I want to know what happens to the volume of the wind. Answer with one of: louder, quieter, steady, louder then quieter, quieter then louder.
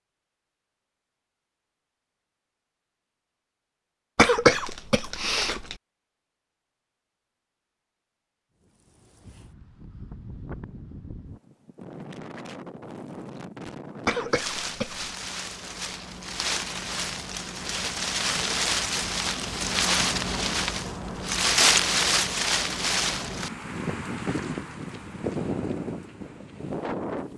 louder then quieter.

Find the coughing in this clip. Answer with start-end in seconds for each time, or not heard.
4.2-5.8, 14.1-15.1.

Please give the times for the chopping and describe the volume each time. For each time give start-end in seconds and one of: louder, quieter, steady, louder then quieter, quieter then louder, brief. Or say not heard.
not heard.